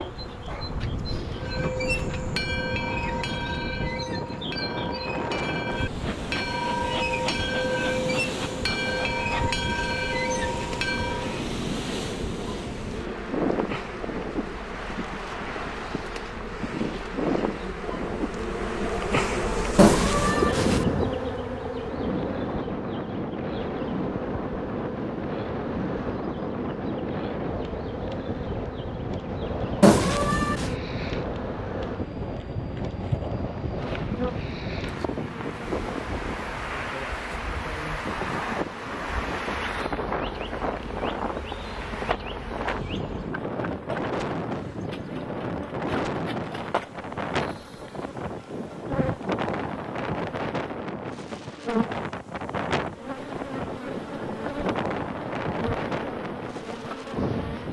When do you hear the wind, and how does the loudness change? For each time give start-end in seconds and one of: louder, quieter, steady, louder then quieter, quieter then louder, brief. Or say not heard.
0.0-57.6 steady.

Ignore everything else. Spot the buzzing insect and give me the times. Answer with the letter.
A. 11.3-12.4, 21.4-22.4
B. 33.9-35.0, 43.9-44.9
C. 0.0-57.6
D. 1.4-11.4
C.